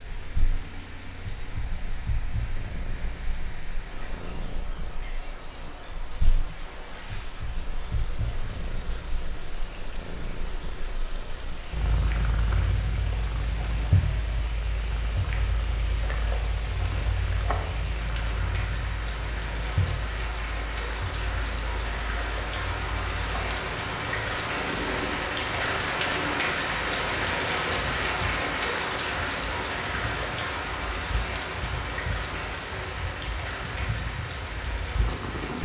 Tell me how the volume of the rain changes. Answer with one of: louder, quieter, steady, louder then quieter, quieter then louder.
louder.